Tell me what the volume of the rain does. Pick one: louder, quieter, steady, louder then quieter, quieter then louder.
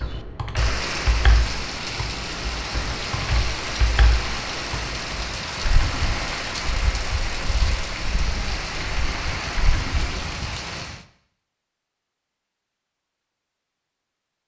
steady.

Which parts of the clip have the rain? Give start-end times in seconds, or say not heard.
0.0-11.1.